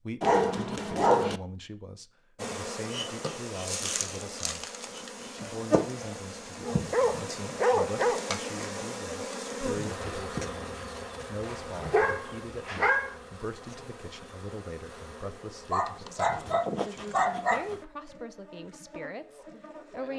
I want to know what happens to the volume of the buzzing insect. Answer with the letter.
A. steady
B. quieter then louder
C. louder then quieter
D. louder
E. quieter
E.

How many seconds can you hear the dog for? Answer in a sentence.
You can hear the dog for 8 seconds altogether.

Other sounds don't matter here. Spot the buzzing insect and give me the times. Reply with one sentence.
The buzzing insect can be heard from 2.4 to 20.1 s.